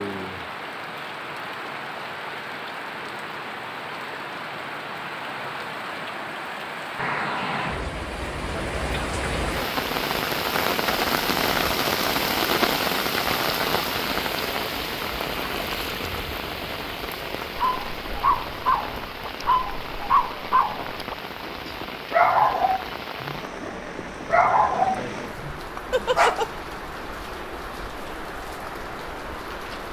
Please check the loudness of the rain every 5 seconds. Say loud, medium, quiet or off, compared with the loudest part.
medium, medium, loud, medium, medium, medium.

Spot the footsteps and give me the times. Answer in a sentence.
You can't hear the footsteps here.